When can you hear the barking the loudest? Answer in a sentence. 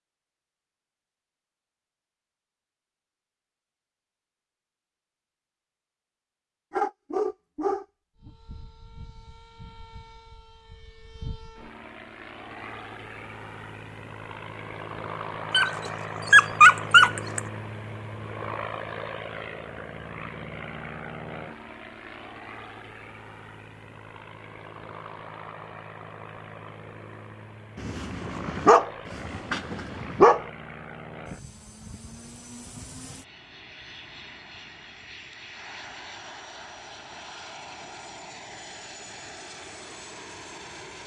The volume of the barking peaks at 17 seconds.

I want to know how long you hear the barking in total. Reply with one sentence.
You can hear the barking for 6 seconds altogether.